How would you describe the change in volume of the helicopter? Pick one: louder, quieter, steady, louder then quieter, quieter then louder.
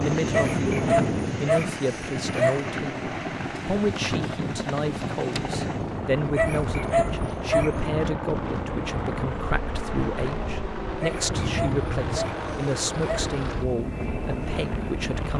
steady.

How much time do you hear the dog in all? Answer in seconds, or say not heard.
6 s.